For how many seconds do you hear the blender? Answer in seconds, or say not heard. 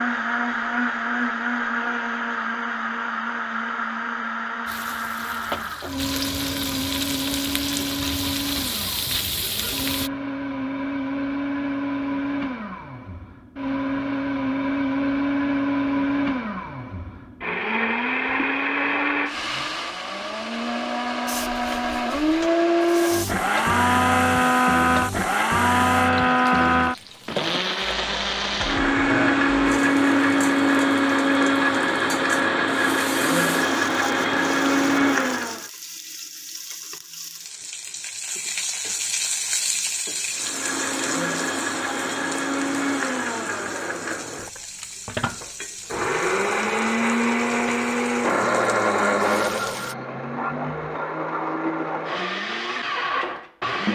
49 s.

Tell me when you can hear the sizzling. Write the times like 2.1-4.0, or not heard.
4.7-10.1, 21.2-50.0.